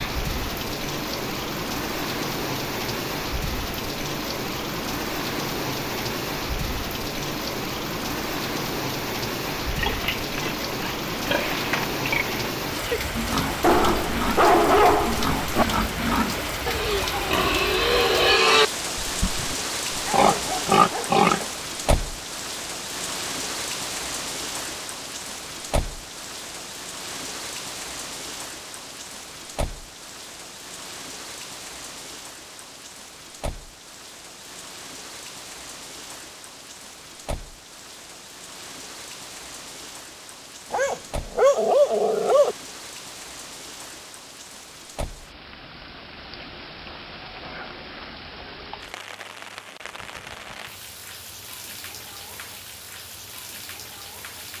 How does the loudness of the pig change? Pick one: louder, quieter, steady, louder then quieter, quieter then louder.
louder.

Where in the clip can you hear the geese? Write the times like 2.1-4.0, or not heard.
not heard.